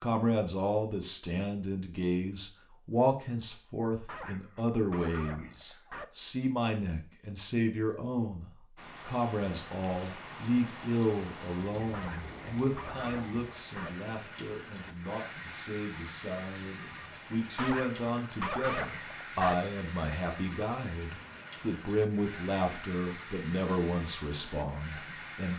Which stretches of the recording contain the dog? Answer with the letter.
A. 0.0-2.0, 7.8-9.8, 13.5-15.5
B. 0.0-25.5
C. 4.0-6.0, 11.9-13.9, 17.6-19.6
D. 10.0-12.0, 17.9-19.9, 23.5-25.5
C.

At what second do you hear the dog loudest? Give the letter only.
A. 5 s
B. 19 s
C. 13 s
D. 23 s
B.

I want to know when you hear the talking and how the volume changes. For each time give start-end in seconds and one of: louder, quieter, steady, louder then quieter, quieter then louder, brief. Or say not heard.
0.0-25.5 steady.